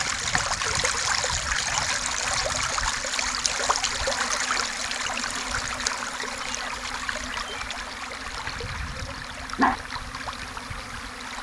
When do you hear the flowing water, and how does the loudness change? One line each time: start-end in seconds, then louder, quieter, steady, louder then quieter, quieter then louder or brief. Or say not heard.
0.0-11.3 quieter.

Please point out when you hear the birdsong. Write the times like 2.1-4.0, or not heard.
not heard.